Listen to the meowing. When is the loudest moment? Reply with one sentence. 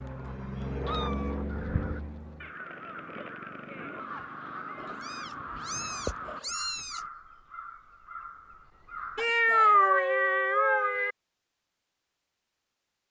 The loudest moment of the meowing is at 10 seconds.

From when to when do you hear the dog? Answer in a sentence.
You can't hear the dog here.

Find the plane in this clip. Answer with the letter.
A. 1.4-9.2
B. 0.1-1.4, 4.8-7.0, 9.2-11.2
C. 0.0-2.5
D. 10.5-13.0
C.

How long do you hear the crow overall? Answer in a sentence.
The crow can be heard for 8 seconds in total.